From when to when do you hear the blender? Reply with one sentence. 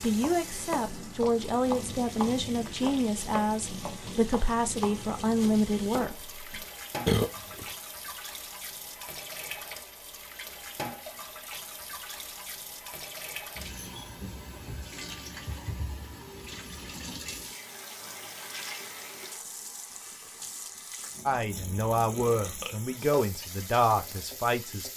The blender can't be heard in this clip.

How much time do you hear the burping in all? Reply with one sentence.
The burping can be heard for 2 seconds in total.